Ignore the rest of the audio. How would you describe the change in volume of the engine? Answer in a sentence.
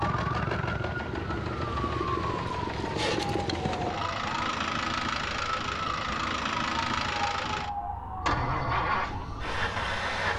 The volume of the engine stays about the same.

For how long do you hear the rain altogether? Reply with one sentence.
You can't hear the rain here.